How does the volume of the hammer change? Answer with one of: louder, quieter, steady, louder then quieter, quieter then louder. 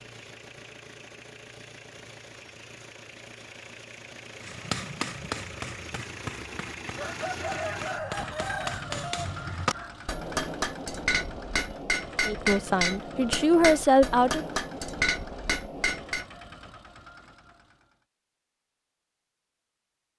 louder.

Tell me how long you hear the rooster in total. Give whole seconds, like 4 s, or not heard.
3 s.